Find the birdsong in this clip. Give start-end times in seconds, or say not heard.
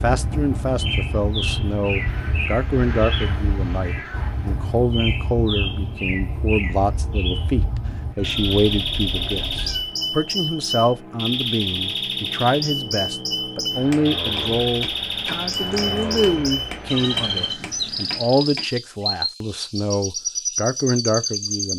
0.0-21.7.